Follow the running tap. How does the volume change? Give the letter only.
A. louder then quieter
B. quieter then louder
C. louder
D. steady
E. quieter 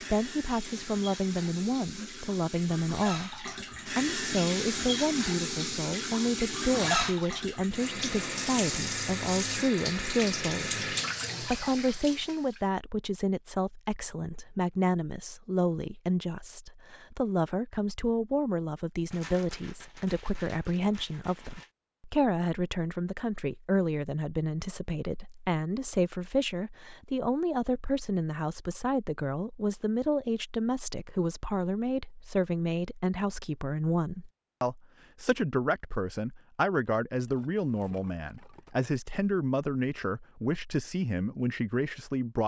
C.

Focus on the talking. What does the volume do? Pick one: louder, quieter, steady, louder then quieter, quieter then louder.
steady.